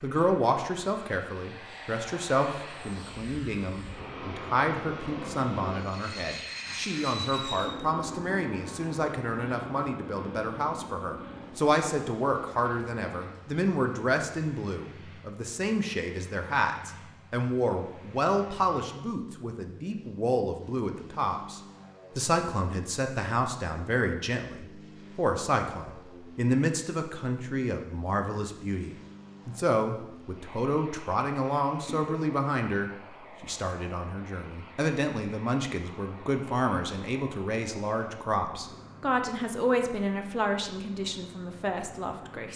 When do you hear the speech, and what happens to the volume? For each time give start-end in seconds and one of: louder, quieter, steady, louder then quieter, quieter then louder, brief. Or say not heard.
0.0-42.5 steady.